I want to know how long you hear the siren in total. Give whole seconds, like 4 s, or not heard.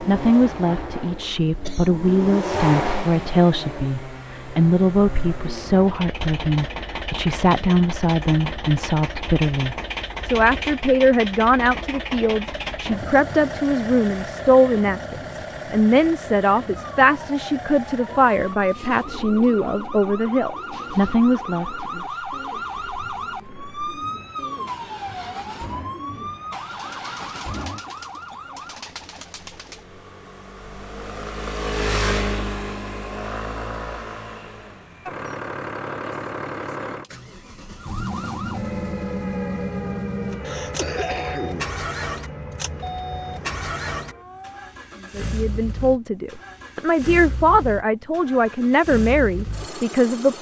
19 s.